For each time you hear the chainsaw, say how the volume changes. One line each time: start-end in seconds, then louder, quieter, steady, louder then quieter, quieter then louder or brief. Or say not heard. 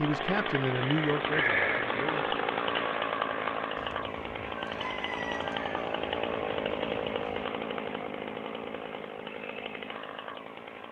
0.0-10.8 quieter.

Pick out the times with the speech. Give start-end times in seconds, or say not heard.
0.0-2.4.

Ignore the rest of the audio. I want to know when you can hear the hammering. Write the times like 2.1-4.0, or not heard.
not heard.